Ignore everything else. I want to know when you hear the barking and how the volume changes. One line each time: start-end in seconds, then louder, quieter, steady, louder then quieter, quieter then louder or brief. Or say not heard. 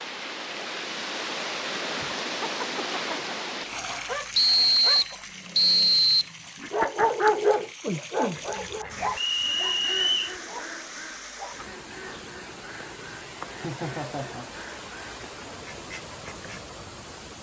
3.6-11.7 louder then quieter.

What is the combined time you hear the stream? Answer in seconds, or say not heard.
17 s.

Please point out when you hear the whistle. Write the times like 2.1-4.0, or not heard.
4.3-6.2, 9.2-10.3.